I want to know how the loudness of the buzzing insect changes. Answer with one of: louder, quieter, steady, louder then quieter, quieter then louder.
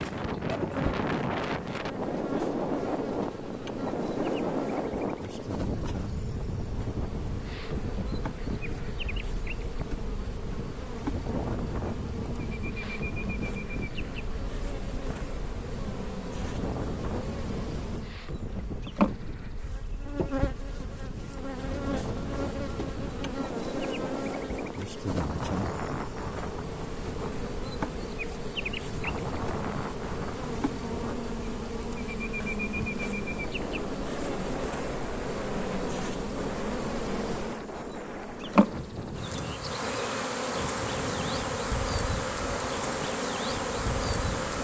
louder.